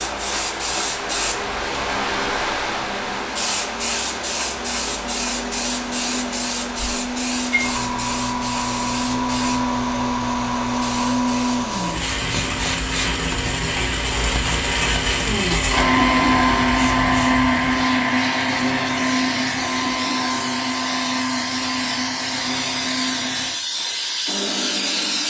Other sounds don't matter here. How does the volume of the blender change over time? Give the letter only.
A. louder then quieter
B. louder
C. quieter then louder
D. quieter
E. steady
A.